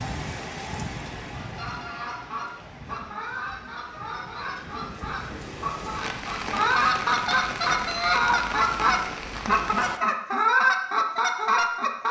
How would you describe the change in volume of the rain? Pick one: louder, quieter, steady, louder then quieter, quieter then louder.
quieter then louder.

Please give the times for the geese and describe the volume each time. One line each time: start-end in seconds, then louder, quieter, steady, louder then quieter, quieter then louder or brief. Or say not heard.
1.4-12.0 louder.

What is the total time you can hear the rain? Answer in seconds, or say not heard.
10 s.